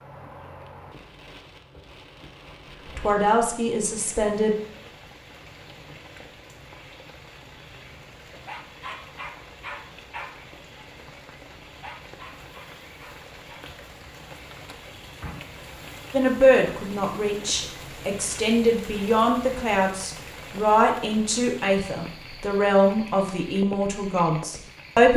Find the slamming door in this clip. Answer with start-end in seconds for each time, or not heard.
15.2-15.8.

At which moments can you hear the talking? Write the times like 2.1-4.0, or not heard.
3.0-4.5, 16.1-25.1.